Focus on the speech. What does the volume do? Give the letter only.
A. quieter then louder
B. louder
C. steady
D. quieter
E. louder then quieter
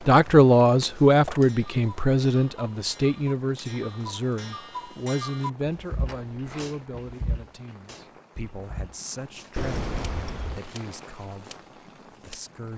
D.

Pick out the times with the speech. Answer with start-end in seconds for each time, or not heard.
0.1-12.7.